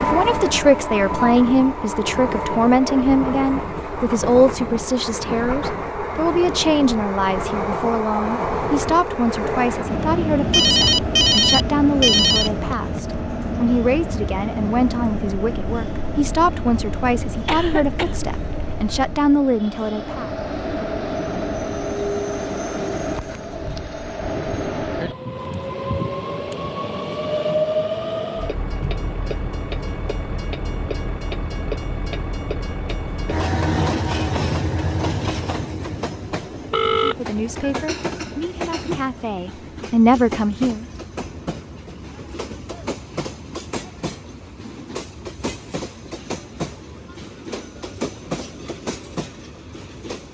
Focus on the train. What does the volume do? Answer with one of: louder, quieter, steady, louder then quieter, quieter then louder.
quieter.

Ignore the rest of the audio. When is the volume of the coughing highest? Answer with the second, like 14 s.
18 s.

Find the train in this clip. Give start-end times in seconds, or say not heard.
0.0-50.2.